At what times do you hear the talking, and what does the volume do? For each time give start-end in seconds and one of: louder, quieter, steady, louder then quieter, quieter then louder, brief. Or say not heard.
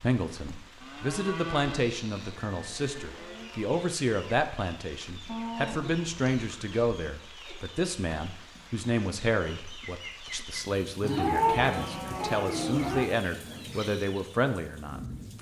0.0-15.3 steady.